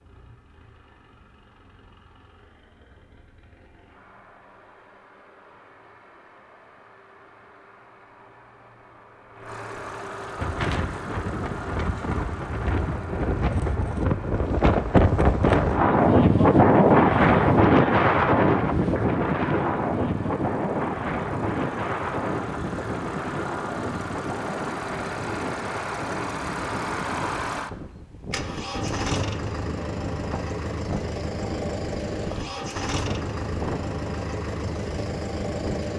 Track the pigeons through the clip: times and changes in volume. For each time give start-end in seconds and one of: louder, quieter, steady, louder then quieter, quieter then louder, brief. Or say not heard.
not heard.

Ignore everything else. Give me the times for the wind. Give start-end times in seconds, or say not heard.
10.3-35.9.